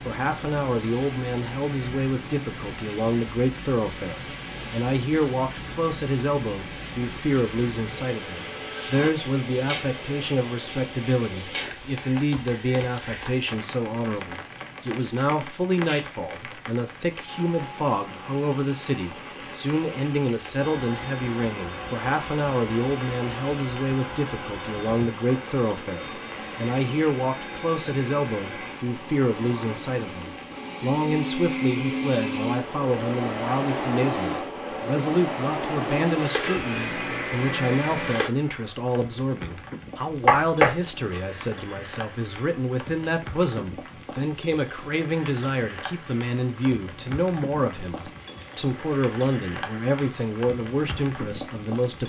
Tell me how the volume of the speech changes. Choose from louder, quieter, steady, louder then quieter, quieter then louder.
steady.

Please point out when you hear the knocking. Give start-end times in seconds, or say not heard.
40.2-41.2.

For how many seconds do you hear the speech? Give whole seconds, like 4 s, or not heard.
52 s.